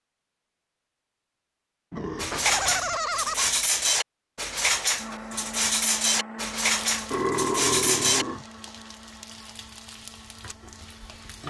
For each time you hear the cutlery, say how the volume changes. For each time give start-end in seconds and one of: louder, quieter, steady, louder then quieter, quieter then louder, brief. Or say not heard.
2.1-8.2 steady.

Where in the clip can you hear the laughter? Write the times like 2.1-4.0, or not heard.
2.3-3.5.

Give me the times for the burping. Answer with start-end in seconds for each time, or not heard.
1.9-3.0, 7.1-8.4.